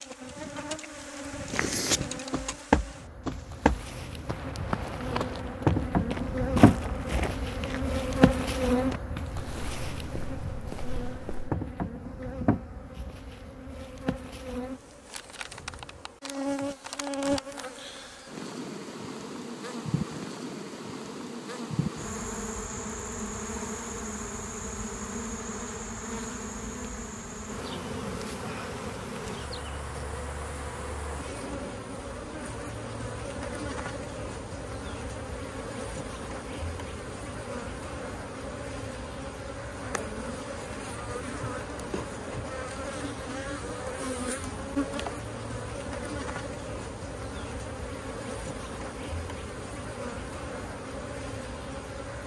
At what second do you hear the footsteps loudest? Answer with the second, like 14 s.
3 s.